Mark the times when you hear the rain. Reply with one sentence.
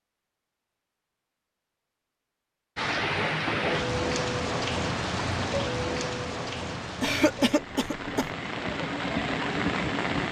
You can hear the rain from 2.8 to 10.2 s.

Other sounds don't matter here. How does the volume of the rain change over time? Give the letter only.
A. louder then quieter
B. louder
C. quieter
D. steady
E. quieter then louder
E.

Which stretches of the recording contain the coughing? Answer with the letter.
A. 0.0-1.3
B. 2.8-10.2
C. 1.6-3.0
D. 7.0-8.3
D.